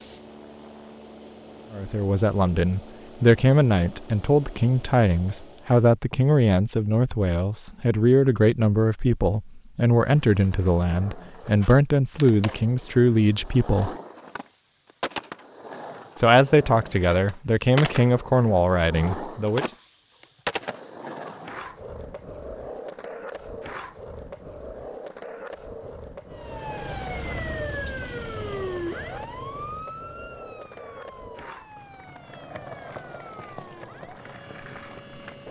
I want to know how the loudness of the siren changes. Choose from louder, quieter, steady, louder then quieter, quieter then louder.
quieter.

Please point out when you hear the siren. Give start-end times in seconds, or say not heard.
26.3-35.4.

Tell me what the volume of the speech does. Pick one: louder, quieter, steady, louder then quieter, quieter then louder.
steady.